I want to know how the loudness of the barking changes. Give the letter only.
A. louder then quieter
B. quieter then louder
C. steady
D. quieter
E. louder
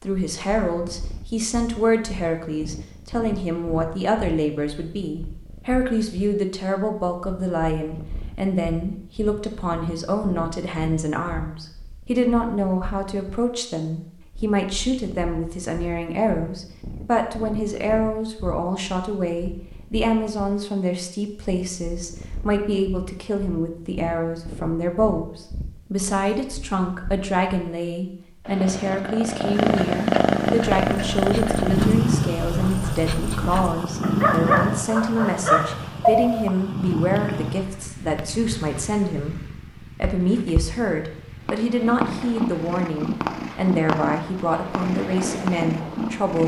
E.